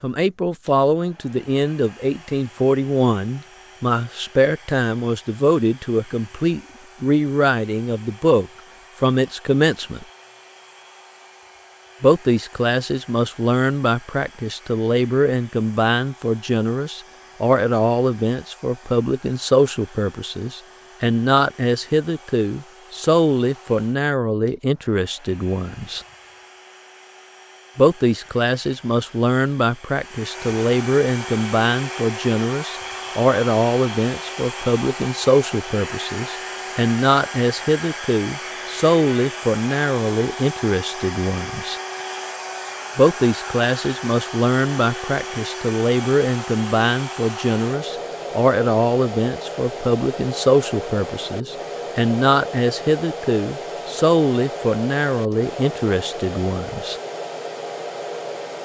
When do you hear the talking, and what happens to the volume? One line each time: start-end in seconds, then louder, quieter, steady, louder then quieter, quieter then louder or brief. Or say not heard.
0.0-10.1 steady
12.0-26.0 steady
27.8-41.8 steady
43.0-57.0 steady.